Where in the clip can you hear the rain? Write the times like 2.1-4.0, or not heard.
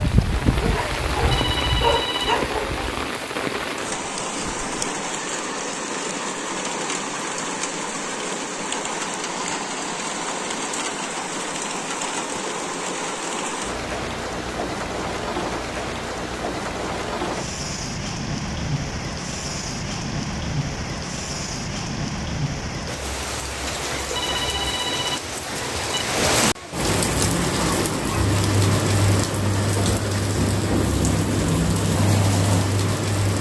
0.0-33.3.